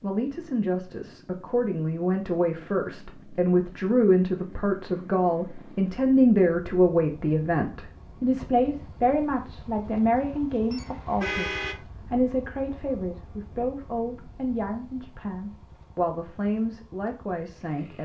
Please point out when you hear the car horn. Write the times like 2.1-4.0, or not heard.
10.7-11.8.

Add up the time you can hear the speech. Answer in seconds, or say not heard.
18 s.